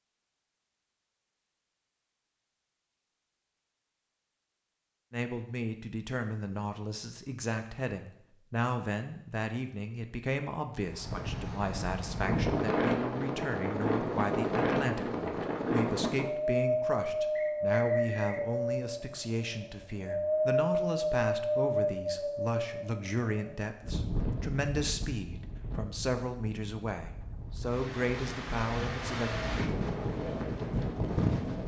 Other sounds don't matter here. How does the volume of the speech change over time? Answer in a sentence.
The loudness of the speech stays about the same.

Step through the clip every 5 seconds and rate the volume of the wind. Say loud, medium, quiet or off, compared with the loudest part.
off, off, loud, loud, loud, medium, loud.